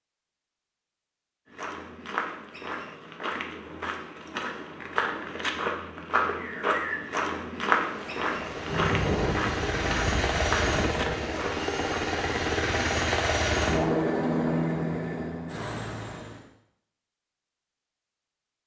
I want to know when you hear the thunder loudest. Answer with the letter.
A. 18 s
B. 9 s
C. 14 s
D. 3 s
B.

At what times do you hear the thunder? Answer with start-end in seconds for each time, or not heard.
8.7-11.3.